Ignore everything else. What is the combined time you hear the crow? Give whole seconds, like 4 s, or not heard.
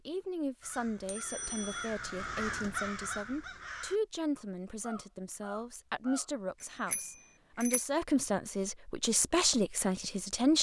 6 s.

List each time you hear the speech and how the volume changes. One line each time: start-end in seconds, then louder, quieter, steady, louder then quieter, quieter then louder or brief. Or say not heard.
0.1-10.5 louder.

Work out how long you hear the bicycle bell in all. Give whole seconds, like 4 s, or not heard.
2 s.